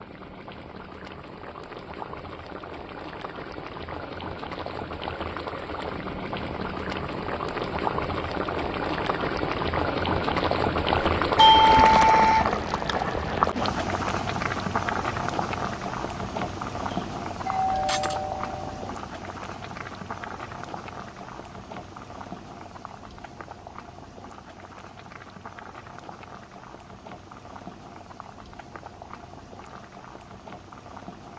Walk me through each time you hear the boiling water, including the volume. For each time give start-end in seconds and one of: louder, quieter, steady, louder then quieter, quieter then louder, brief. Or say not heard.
0.0-31.3 louder then quieter.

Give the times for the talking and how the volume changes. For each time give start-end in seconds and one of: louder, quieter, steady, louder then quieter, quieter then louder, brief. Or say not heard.
not heard.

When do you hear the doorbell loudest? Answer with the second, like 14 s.
12 s.